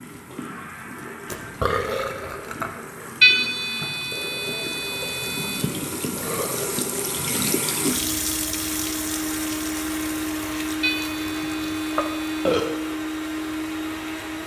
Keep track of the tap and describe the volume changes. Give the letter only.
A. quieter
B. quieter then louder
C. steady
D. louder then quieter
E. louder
D.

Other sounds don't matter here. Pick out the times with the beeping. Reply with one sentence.
You can hear the beeping from 3.2 to 5.6 s and from 10.8 to 12.5 s.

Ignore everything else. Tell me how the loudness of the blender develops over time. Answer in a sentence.
The loudness of the blender goes up.